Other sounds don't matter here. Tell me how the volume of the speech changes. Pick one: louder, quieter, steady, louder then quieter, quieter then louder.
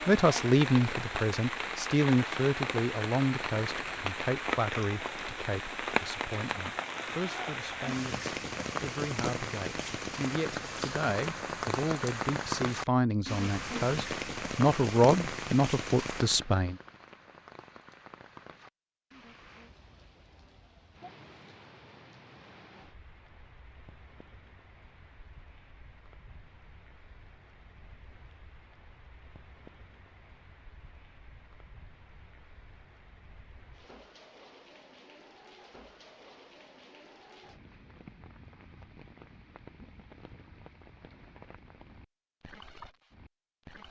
quieter then louder.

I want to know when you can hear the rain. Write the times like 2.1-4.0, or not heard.
0.0-43.8.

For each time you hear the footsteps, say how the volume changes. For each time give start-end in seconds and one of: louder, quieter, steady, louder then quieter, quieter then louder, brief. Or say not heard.
not heard.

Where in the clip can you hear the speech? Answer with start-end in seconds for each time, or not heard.
0.1-16.8.